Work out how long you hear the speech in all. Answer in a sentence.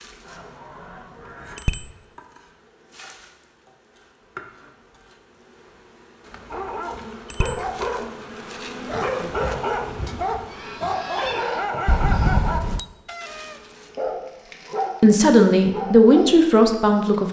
You can hear the speech for 2 seconds altogether.